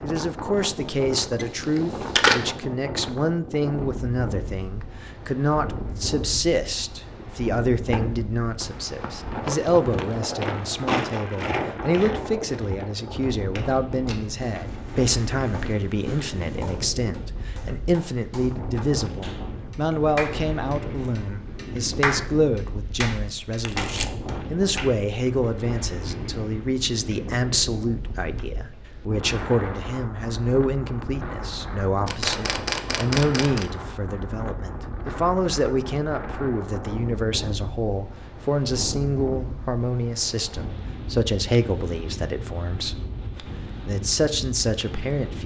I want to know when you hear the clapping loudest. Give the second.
22 s.